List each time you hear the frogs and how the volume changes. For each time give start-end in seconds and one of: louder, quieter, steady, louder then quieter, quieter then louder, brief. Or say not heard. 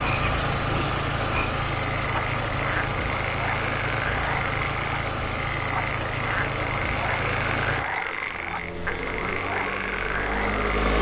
0.0-10.9 steady.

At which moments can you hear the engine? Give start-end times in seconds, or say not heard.
0.0-10.9.